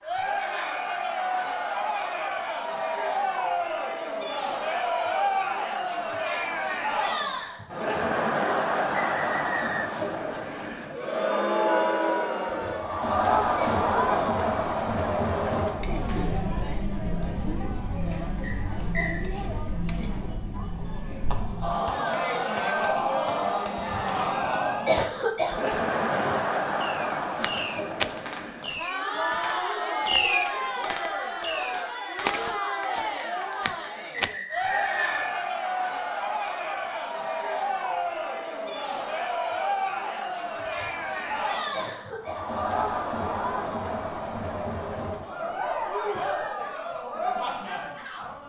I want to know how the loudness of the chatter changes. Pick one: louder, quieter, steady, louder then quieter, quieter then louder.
steady.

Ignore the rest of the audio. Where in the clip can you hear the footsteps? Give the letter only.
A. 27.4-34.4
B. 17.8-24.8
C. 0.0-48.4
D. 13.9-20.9
A.